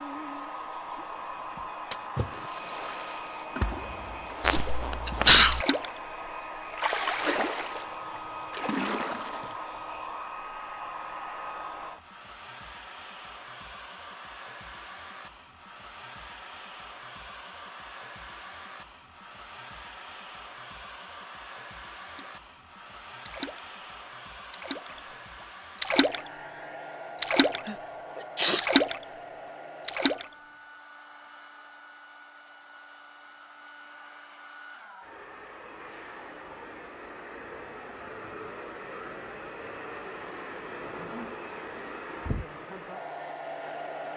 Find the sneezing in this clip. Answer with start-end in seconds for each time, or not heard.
4.4-5.7, 27.6-28.7.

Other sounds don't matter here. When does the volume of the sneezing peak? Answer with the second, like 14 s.
5 s.